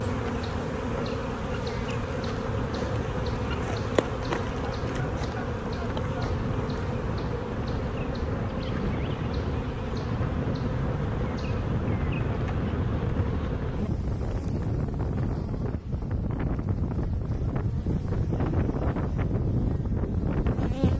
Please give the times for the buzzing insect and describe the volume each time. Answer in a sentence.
You can hear the buzzing insect from 0.0 to 20.9 s, getting quieter.